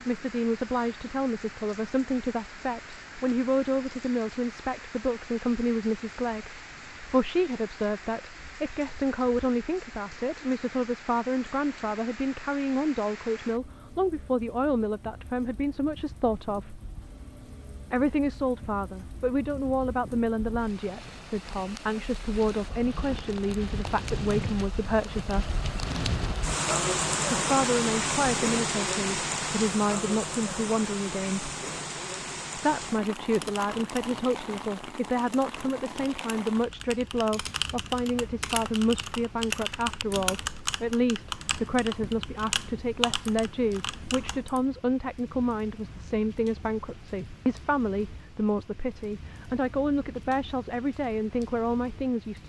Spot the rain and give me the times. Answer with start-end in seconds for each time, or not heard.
0.0-52.4.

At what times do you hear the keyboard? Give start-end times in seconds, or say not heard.
33.0-44.6.